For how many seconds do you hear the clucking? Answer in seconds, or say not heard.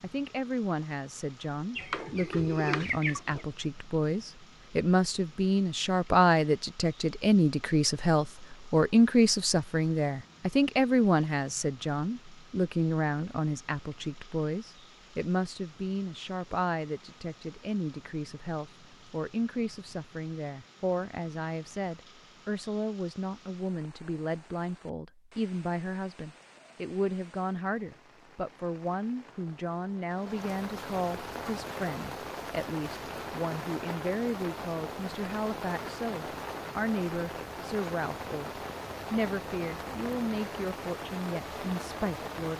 2 s.